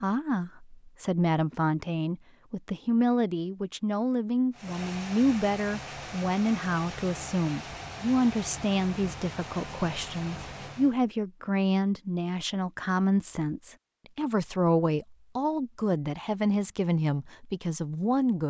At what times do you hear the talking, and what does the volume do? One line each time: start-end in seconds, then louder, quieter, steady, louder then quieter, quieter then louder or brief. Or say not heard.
0.0-18.4 steady.